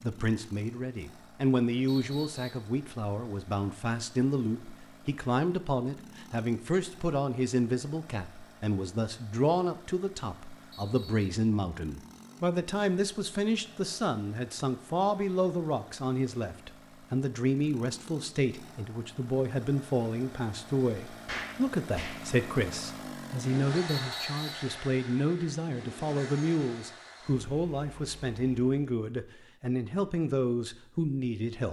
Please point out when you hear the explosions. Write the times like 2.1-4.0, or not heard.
21.2-22.1.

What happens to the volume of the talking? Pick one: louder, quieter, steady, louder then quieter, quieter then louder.
steady.